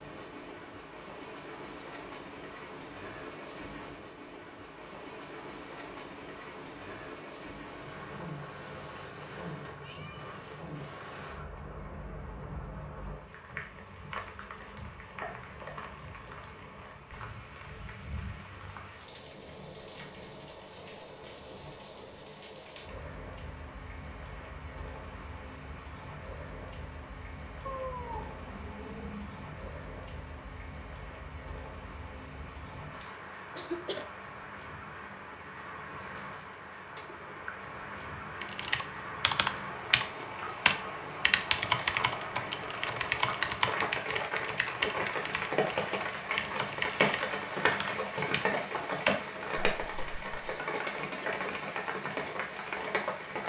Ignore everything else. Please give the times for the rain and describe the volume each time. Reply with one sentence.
You can hear the rain from 0.0 to 53.4 s, getting louder.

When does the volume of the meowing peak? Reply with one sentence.
The volume of the meowing peaks at 28 seconds.